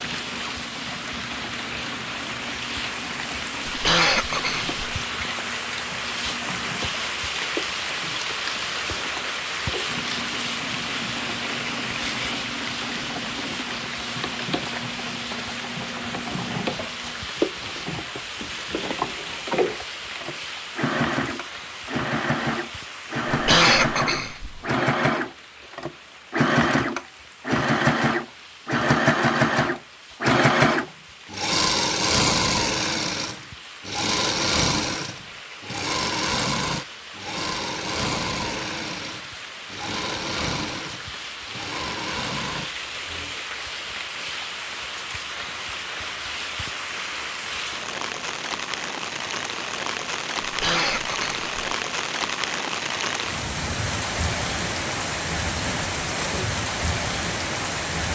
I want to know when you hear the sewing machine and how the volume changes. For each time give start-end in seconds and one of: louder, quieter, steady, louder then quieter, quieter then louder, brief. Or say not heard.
0.0-43.4 louder then quieter.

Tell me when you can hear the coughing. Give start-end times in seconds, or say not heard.
3.6-4.8, 23.3-24.6, 50.4-51.5.